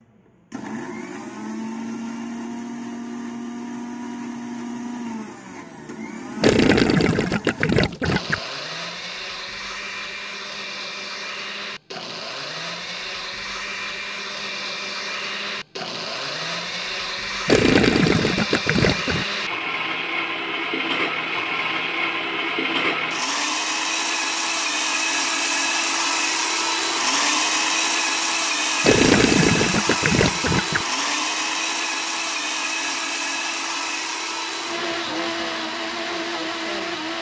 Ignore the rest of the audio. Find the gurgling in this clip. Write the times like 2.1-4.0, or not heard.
6.4-8.4, 17.4-19.2, 28.8-30.9.